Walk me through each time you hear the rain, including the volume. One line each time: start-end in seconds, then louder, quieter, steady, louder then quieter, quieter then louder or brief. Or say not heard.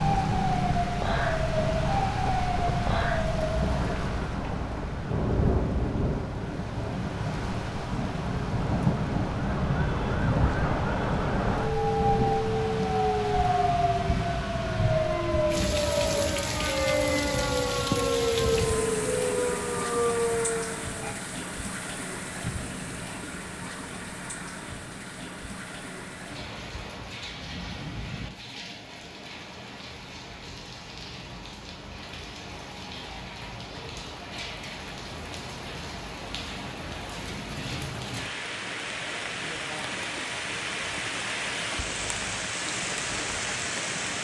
0.0-44.1 quieter then louder.